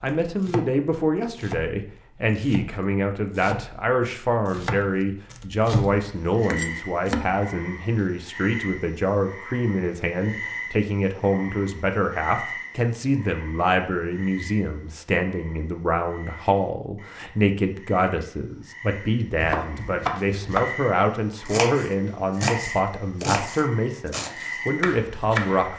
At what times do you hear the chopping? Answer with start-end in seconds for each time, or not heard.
0.2-7.4, 19.4-20.7, 21.4-25.7.